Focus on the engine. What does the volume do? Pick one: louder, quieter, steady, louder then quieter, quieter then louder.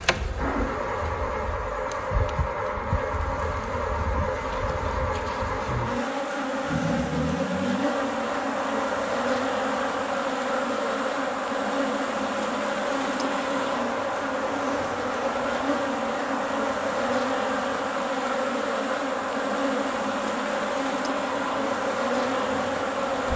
steady.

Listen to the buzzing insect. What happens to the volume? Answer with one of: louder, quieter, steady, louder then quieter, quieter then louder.
louder.